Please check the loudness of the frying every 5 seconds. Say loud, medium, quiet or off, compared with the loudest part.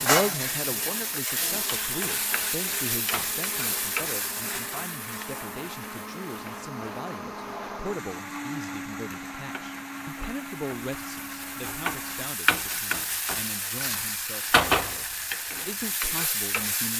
loud, quiet, loud, loud.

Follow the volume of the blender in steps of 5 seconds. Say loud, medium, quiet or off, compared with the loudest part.
medium, loud, loud, off.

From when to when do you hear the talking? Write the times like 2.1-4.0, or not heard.
0.0-16.9.